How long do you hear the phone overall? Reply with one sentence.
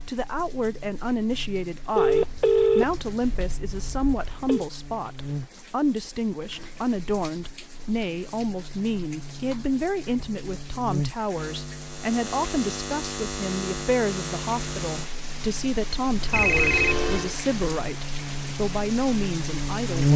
The phone can be heard for 4 seconds in total.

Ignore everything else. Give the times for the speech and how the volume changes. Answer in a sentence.
The speech can be heard from 0.1 to 20.1 s, at a steady volume.